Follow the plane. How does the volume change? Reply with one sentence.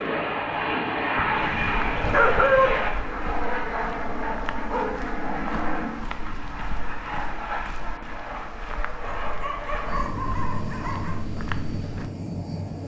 The volume of the plane goes down.